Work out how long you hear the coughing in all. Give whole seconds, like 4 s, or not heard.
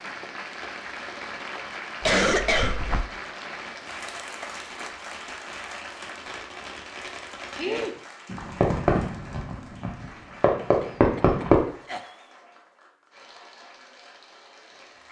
3 s.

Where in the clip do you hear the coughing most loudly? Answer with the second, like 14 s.
2 s.